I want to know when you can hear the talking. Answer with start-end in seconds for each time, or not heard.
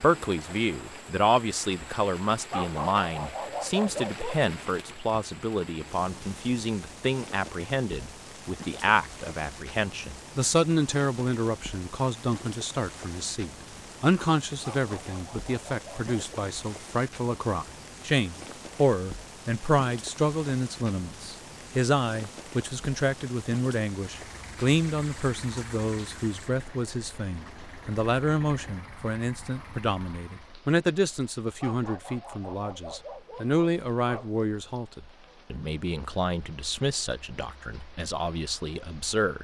0.0-39.3.